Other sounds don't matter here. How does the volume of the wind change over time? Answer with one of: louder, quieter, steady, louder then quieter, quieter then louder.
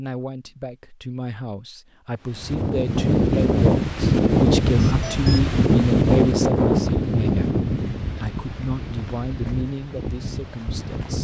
quieter.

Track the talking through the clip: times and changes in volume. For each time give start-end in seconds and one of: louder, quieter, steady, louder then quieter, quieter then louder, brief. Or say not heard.
0.0-11.2 louder then quieter.